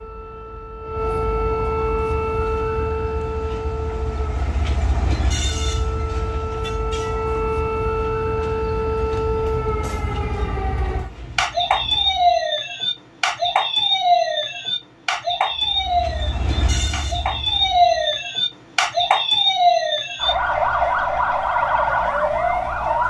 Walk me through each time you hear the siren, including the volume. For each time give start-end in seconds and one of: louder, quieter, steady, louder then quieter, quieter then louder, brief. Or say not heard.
0.0-23.0 louder.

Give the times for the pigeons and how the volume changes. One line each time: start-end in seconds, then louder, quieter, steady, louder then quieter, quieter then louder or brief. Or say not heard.
not heard.